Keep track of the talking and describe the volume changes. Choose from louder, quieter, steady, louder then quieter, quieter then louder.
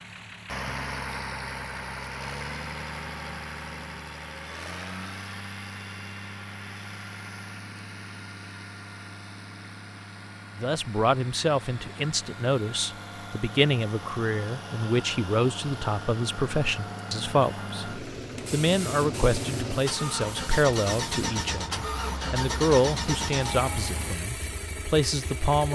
steady.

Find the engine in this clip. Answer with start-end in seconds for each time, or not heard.
0.0-25.6.